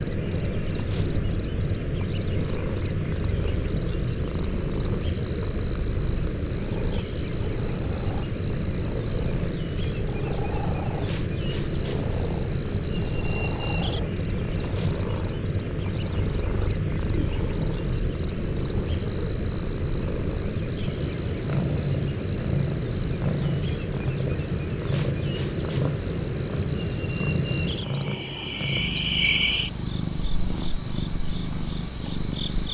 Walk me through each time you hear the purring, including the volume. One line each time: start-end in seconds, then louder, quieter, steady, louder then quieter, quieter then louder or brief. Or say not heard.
0.0-32.6 louder.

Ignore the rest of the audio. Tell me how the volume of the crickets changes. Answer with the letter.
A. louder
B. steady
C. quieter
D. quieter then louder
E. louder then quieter
B.